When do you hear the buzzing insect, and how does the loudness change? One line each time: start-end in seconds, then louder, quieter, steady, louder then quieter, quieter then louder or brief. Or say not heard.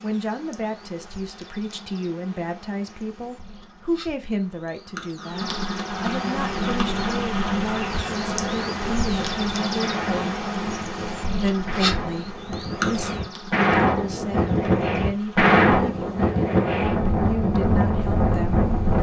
0.0-18.9 louder then quieter.